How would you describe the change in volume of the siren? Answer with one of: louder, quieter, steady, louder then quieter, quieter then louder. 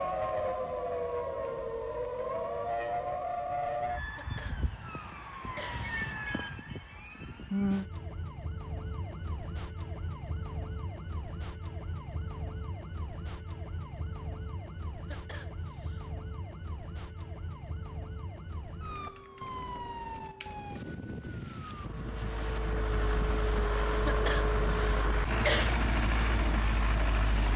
quieter.